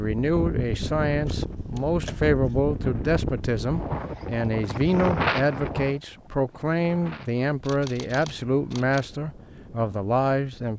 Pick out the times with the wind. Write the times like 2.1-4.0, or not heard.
0.0-10.7.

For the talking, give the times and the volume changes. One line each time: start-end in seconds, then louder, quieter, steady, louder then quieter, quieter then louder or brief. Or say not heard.
0.0-10.7 steady.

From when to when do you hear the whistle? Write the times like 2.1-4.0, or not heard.
not heard.